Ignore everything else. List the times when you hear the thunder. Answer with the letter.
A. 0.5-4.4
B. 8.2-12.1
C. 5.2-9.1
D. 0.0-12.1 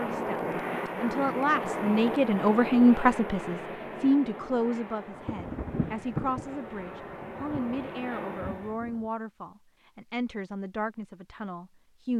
C.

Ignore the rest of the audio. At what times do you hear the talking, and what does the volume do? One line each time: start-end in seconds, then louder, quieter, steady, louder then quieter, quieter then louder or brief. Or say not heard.
0.0-12.1 quieter.